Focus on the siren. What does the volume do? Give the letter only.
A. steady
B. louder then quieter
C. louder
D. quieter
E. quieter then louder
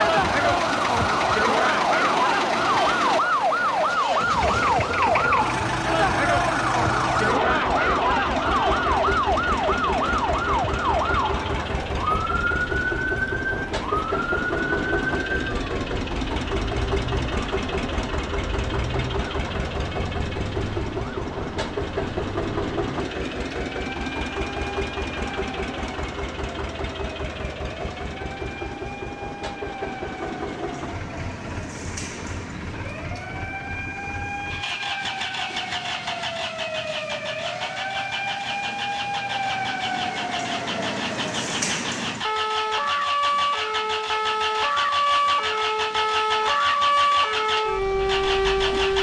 E.